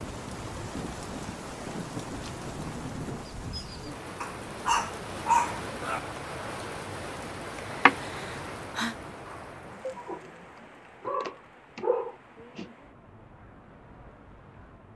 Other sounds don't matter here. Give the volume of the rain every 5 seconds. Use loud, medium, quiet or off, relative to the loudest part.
loud, loud, quiet.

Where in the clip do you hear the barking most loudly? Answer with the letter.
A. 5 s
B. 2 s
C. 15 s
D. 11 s
A.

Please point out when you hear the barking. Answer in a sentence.
The barking can be heard from 4.2 to 6.0 s, from 9.8 to 10.3 s and from 11.1 to 12.7 s.